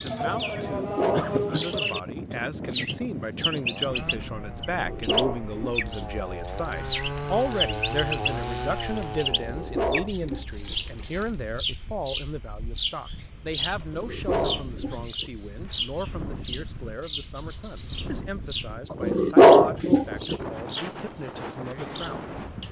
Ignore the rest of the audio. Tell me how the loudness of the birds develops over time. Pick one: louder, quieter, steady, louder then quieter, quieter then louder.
quieter.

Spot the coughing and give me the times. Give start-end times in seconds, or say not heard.
1.1-1.8.